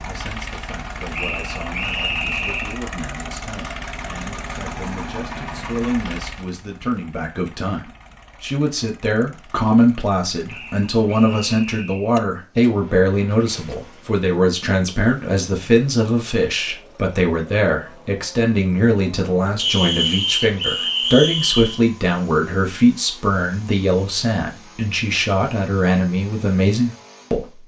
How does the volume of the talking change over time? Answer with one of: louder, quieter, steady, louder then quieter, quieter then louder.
louder.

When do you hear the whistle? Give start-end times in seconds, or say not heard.
1.1-2.8, 10.4-12.1, 19.6-21.8.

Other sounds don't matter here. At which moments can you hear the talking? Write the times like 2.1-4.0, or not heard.
0.0-27.6.